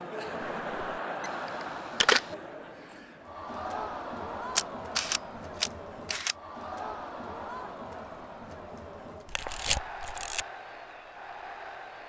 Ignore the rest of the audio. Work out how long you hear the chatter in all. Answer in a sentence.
You can hear the chatter for 12 seconds altogether.